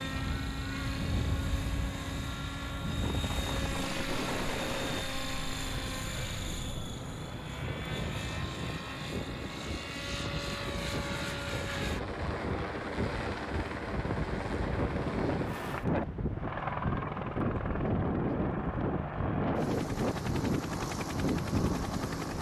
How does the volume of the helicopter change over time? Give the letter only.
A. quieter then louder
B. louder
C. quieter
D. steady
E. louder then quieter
D.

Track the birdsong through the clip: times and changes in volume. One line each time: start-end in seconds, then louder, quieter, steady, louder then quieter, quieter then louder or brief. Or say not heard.
not heard.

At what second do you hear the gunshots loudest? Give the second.
4 s.